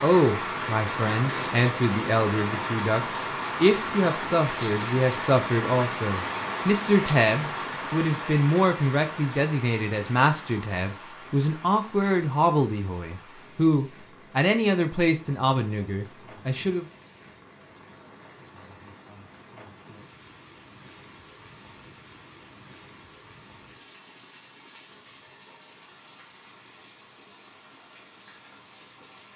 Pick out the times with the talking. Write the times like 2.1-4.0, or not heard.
0.0-16.9.